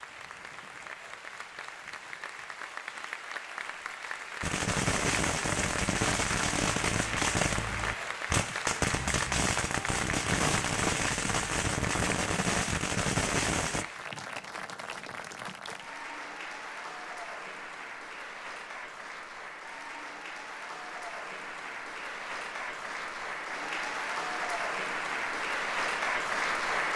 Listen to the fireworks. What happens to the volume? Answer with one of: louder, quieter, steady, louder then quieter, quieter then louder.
steady.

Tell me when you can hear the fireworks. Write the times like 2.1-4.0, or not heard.
4.4-13.8.